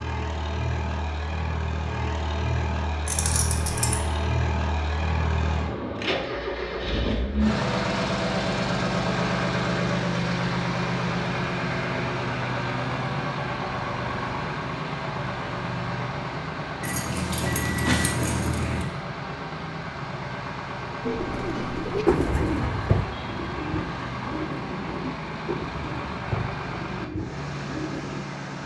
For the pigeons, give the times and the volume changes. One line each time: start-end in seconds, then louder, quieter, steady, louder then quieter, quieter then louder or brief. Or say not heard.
21.0-28.2 quieter.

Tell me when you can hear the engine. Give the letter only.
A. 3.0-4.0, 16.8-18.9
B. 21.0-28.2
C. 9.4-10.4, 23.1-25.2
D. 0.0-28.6
D.